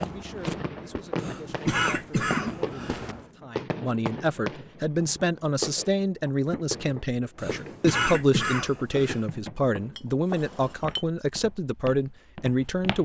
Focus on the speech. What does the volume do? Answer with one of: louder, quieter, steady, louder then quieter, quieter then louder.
louder.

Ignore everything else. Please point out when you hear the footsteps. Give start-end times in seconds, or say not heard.
0.0-3.2, 10.7-12.9.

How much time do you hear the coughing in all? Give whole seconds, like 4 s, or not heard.
4 s.